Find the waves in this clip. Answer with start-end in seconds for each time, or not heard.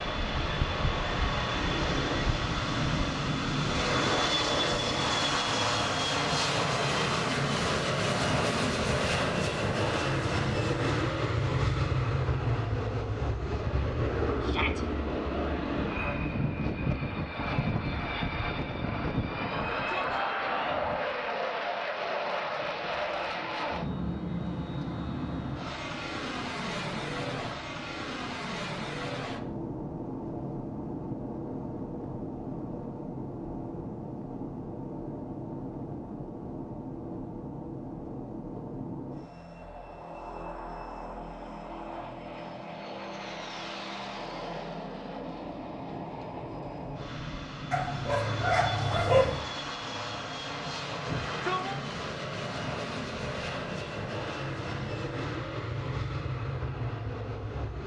not heard.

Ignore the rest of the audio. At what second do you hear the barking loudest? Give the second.
49 s.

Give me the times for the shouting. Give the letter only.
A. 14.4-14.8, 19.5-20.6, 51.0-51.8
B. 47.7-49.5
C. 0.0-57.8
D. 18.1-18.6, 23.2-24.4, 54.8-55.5
A.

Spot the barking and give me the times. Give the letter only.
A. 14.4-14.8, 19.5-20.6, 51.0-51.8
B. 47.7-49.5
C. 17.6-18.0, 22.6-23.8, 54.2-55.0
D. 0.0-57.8
B.